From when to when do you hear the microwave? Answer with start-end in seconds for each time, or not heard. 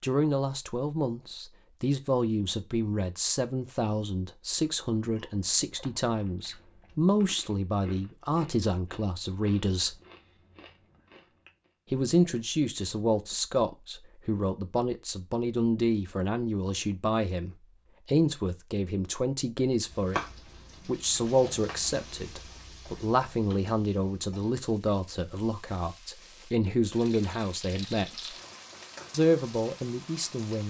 not heard.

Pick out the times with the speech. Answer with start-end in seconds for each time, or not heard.
0.0-10.0, 11.9-20.2, 20.9-28.4, 29.1-30.6.